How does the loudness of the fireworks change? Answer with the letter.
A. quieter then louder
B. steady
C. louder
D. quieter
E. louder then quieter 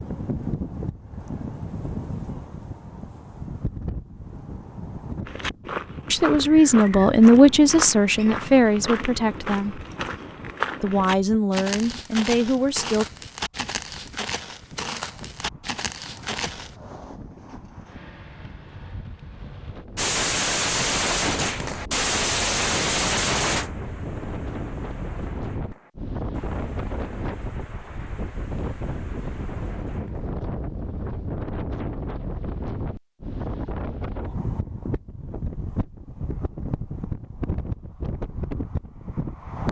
D.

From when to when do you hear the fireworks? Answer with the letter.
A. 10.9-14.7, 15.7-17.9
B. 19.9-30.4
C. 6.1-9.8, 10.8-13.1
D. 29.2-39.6
B.